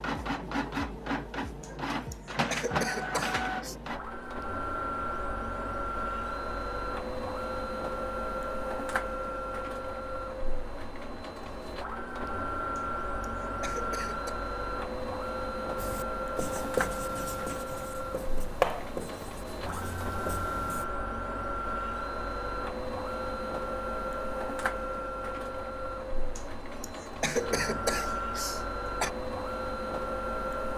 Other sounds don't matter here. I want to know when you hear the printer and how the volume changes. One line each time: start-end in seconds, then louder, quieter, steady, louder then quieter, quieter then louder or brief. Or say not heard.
0.0-30.7 steady.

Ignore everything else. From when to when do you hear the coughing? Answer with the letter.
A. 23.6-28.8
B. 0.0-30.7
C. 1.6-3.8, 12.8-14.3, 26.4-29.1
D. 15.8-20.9
C.